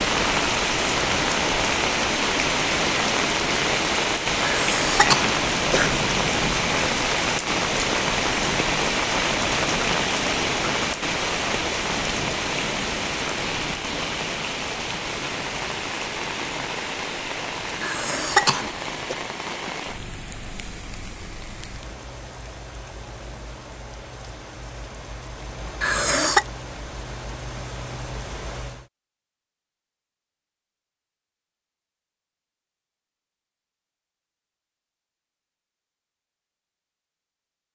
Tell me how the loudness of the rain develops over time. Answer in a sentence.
The loudness of the rain goes down.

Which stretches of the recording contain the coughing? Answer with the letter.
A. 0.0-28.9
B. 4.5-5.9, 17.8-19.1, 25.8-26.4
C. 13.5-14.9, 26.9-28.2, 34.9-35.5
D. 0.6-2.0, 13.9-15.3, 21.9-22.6
B.